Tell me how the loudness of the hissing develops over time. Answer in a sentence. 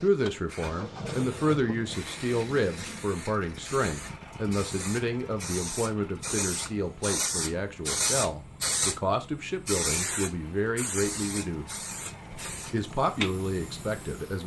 The loudness of the hissing goes up, then down.